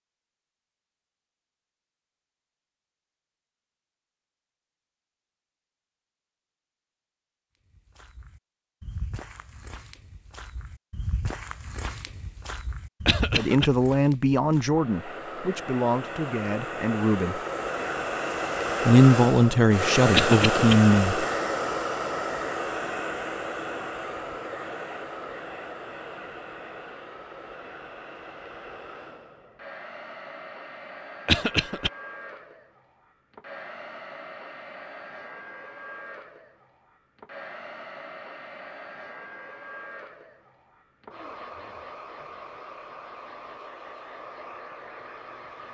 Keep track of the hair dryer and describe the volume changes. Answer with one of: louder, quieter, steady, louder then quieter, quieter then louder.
quieter.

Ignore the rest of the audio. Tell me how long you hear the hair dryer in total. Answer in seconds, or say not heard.
31 s.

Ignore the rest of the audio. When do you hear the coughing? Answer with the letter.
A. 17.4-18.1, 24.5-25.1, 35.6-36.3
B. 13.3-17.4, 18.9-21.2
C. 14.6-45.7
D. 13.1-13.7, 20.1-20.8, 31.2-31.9
D.